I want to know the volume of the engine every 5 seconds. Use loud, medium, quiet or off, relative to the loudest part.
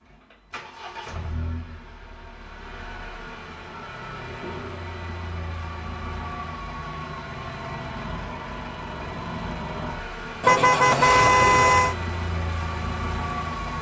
medium, loud, loud.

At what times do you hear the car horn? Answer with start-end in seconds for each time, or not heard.
10.4-11.9.